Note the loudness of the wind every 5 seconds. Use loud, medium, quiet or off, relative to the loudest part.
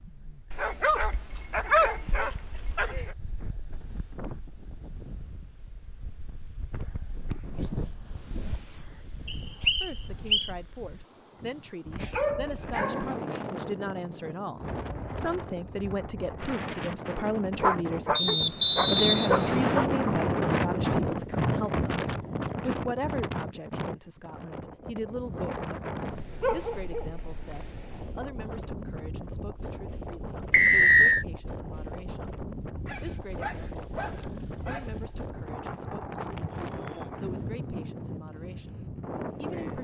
quiet, quiet, medium, loud, loud, medium, medium, medium.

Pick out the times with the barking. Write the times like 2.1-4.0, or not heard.
0.5-3.1, 11.9-13.4, 17.6-20.1, 26.4-27.6, 32.9-35.1.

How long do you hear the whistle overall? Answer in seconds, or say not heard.
4 s.